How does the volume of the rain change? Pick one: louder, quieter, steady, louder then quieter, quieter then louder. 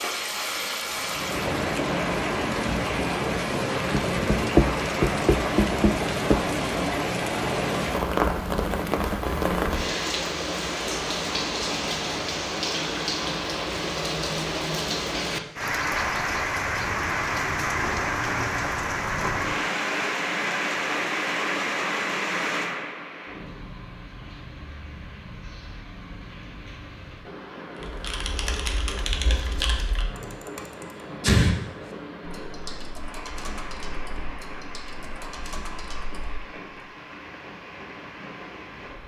quieter.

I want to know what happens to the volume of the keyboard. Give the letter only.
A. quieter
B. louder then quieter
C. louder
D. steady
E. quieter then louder
B.